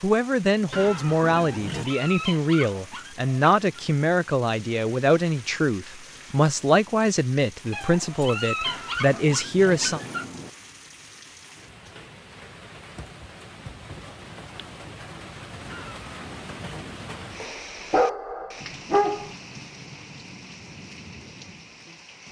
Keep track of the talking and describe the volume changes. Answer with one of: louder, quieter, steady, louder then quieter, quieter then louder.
steady.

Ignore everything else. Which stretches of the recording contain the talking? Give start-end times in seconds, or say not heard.
0.0-10.0.